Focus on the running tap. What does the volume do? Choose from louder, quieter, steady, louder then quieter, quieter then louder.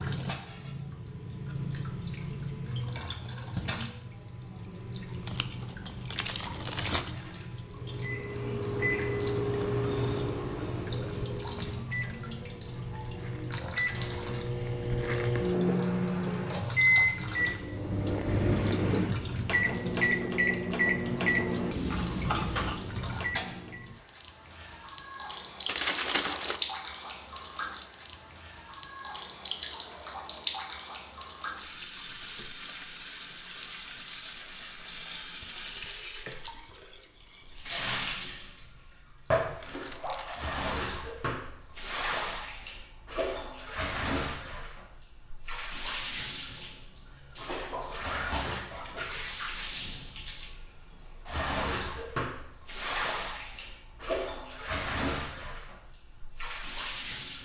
steady.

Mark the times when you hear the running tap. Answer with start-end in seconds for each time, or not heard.
0.0-57.4.